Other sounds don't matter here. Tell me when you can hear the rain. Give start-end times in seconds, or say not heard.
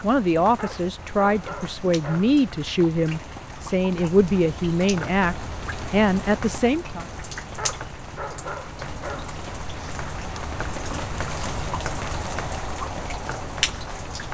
0.0-14.2.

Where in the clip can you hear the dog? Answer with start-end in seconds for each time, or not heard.
0.6-2.3, 7.5-9.3.